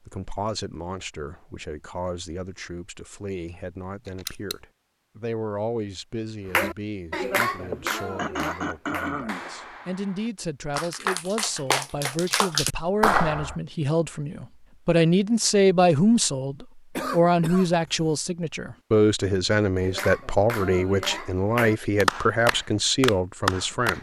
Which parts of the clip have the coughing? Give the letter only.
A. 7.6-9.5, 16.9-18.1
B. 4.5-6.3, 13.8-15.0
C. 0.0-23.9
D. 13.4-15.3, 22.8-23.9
A.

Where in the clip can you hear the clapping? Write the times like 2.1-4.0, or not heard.
6.5-13.6, 19.8-23.9.